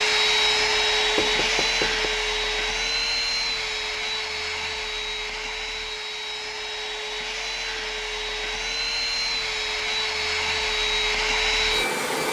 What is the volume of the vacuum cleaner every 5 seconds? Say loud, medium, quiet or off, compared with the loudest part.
loud, medium, loud.